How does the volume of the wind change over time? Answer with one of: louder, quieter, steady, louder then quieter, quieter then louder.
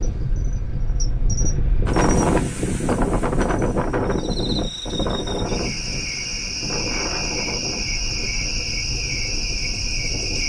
quieter.